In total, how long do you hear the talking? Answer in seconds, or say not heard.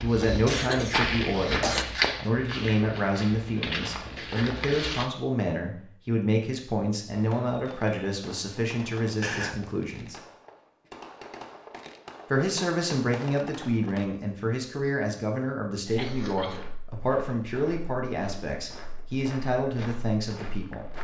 19 s.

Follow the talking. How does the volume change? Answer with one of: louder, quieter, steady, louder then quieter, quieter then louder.
steady.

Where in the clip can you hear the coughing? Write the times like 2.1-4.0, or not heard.
0.5-1.9, 9.2-9.6, 15.8-16.6.